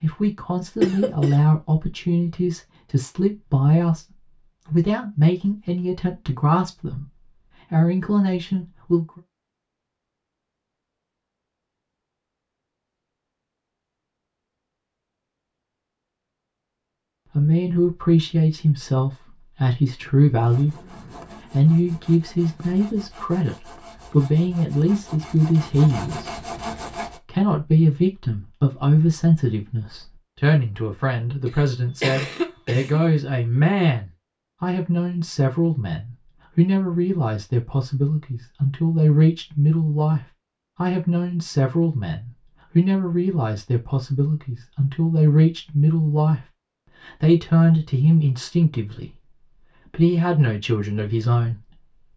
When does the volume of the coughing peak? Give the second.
1 s.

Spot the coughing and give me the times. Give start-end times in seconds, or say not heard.
0.8-1.4, 31.4-33.0.